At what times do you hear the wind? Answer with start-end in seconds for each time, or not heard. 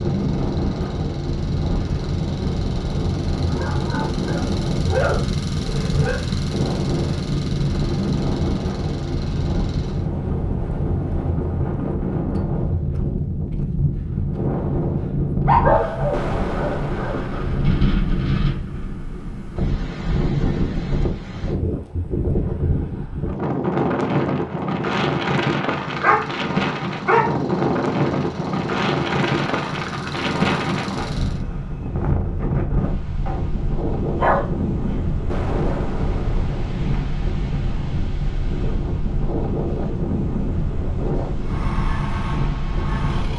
0.0-43.3.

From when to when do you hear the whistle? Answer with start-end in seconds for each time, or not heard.
not heard.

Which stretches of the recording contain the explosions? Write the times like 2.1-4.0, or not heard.
16.1-18.1, 35.2-37.3.